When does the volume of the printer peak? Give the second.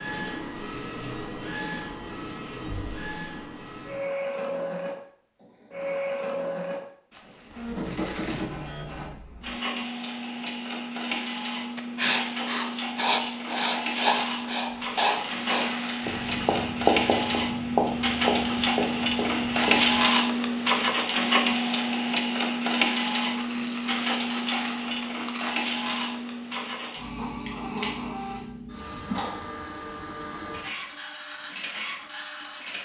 20 s.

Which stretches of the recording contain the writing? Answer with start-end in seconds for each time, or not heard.
11.8-20.0.